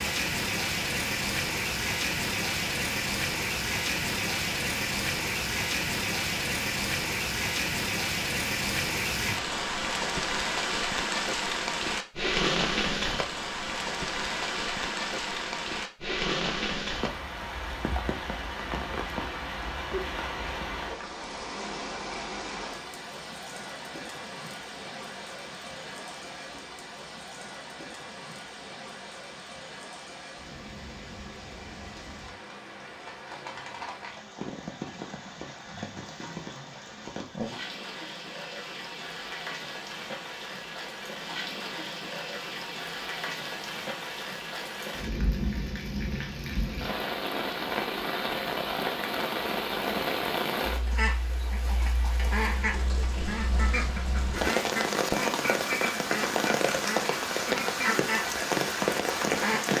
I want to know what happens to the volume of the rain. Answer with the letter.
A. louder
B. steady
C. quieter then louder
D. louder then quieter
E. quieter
C.